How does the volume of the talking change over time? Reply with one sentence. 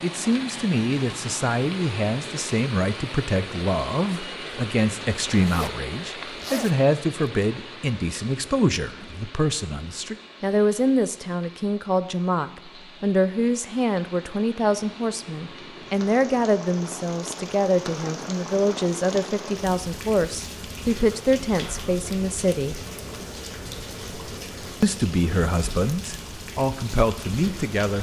The loudness of the talking stays about the same.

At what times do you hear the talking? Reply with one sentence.
The talking can be heard from 0.0 to 22.8 s and from 24.8 to 27.9 s.